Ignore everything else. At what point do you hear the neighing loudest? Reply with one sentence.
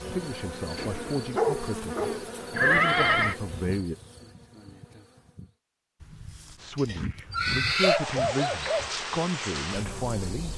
The loudest moment of the neighing is at 3 seconds.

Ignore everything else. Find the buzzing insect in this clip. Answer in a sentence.
The buzzing insect can be heard from 0.0 to 5.5 s and from 7.8 to 10.5 s.